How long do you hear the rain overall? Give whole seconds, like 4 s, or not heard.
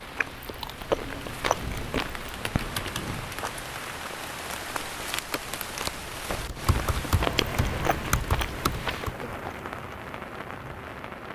11 s.